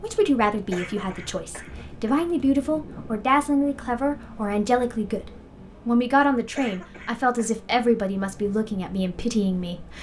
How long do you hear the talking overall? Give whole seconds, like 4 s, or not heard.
10 s.